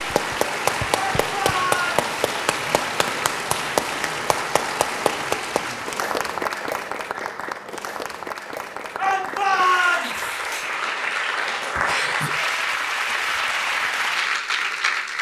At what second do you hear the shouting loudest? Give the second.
10 s.